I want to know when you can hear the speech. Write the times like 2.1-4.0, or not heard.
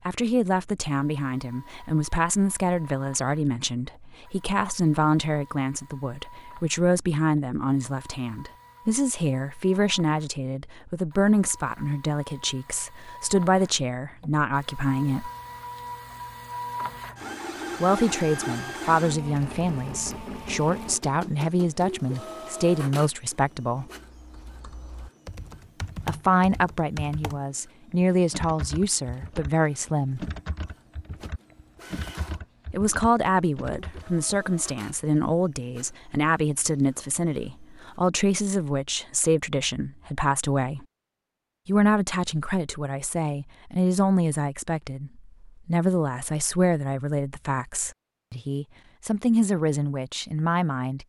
0.1-15.3, 17.8-23.9, 26.1-30.2, 32.7-40.9, 41.6-51.0.